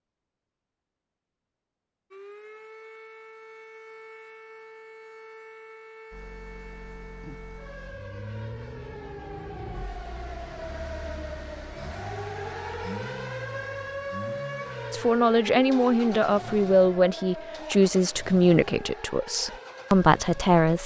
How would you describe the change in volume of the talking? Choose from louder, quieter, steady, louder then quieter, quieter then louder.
steady.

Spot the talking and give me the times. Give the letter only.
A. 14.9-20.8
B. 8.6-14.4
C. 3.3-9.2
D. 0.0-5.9
A.